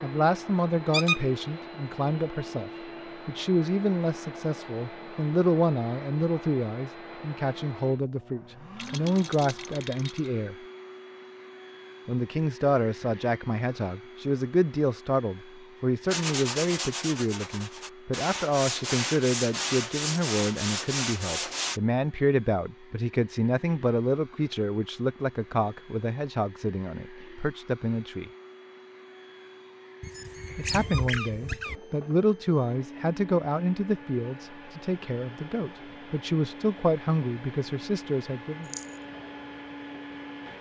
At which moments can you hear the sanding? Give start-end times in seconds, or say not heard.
16.1-21.8.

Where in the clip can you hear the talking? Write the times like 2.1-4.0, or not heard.
0.0-10.6, 12.1-28.3, 30.6-38.7.